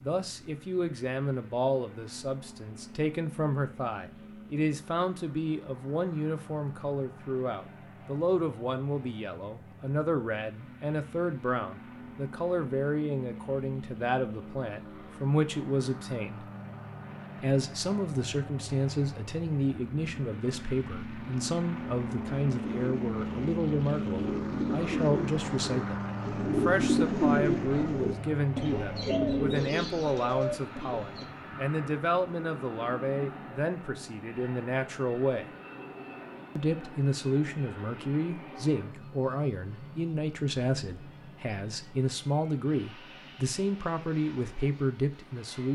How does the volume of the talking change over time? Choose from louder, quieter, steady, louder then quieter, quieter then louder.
steady.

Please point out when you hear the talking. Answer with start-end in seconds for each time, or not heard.
0.0-16.4, 17.4-35.5, 36.5-45.7.